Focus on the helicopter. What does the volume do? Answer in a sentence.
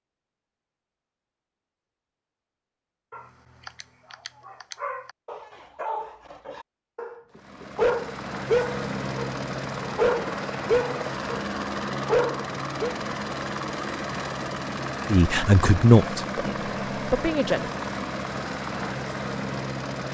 The volume of the helicopter stays about the same.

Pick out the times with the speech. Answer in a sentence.
You can hear the speech from 15.1 to 17.7 s.